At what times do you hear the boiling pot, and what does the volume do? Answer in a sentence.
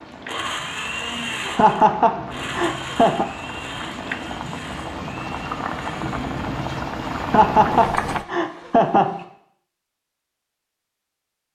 You can hear the boiling pot from 0.0 to 8.2 s, getting louder.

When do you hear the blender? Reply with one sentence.
You can hear the blender from 0.1 to 9.3 s.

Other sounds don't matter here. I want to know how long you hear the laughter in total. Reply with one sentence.
The laughter can be heard for 4 seconds in total.